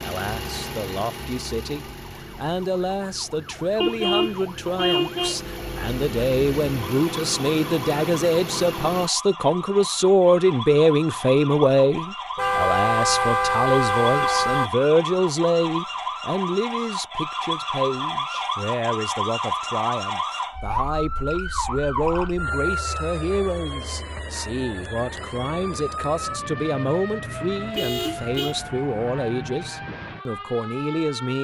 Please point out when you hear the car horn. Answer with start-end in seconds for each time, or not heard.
3.8-5.3, 12.3-14.7, 27.7-28.6.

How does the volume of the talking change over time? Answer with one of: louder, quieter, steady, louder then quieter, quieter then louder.
louder then quieter.